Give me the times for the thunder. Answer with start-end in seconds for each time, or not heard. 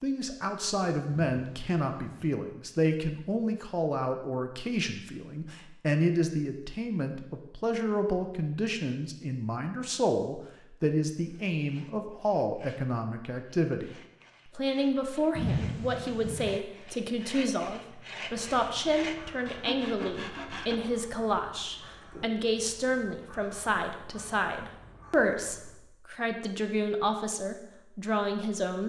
1.2-2.4, 15.3-16.6.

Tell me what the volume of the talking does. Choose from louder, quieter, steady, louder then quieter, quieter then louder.
steady.